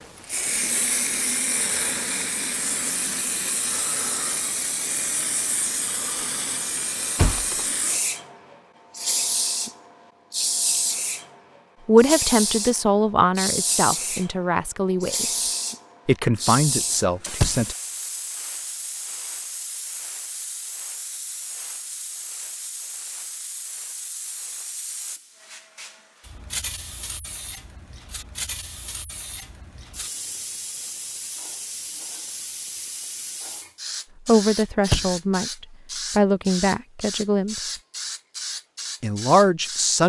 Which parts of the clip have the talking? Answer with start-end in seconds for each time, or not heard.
11.8-15.4, 16.1-17.8, 34.2-37.8, 39.0-40.0.